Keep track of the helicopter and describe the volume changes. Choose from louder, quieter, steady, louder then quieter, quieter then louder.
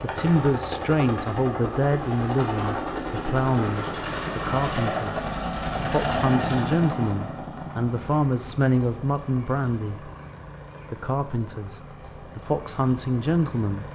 quieter.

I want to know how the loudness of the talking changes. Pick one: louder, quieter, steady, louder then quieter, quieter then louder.
steady.